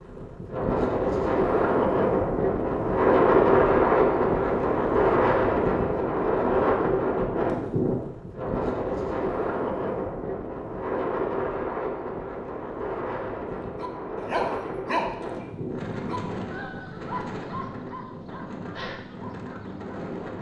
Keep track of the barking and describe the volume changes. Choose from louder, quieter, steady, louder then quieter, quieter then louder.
quieter.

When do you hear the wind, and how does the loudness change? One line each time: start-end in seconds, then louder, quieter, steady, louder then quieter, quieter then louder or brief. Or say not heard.
0.0-20.3 quieter.